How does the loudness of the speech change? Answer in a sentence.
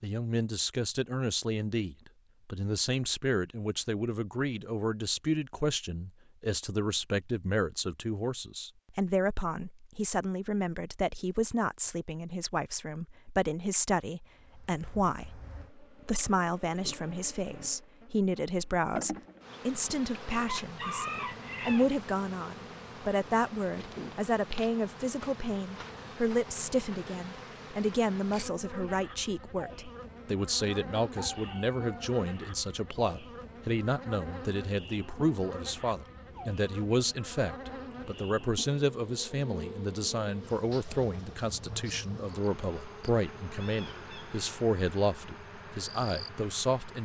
The loudness of the speech stays about the same.